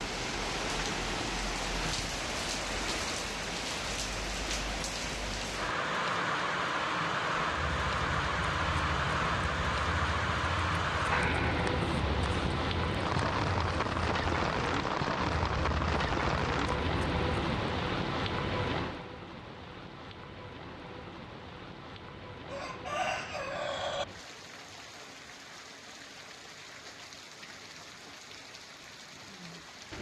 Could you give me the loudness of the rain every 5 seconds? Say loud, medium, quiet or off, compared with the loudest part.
loud, loud, loud, loud, quiet, quiet.